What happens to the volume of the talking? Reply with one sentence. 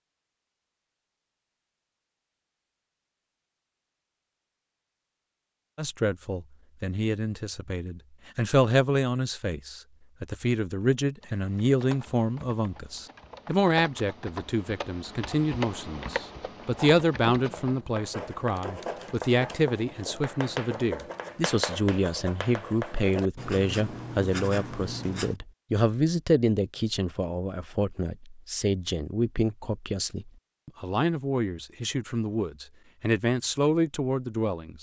The volume of the talking stays about the same.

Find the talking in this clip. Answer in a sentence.
You can hear the talking from 5.8 to 34.7 s.